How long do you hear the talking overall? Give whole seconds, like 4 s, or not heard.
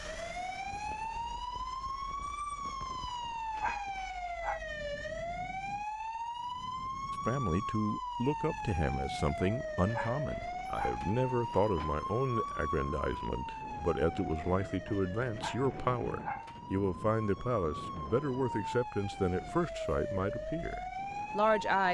15 s.